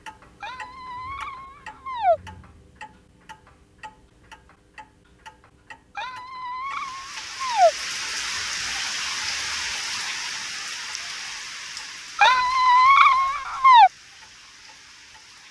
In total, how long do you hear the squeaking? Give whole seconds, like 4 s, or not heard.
5 s.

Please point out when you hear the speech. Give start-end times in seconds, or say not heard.
not heard.